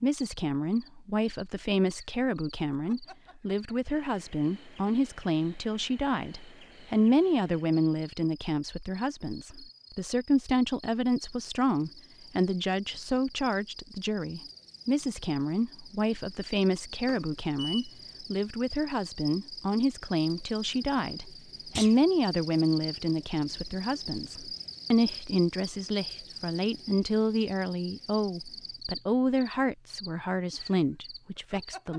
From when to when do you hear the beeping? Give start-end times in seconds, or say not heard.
17.1-18.0.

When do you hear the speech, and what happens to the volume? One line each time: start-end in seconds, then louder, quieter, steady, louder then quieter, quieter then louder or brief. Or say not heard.
0.0-31.9 steady.